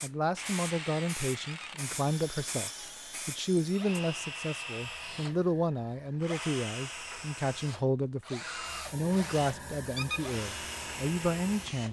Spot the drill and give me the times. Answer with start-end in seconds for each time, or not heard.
0.1-11.8.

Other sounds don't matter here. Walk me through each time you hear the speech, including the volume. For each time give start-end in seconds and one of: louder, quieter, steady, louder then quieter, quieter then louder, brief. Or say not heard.
0.0-11.8 steady.